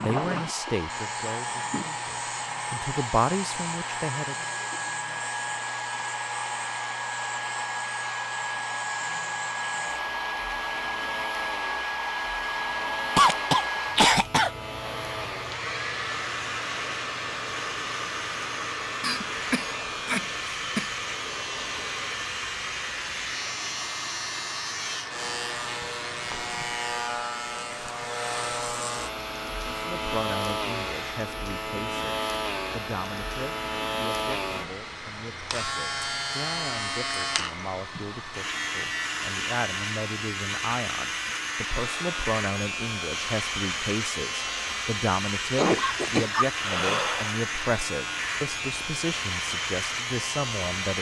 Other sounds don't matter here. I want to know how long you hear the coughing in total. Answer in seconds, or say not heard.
5 s.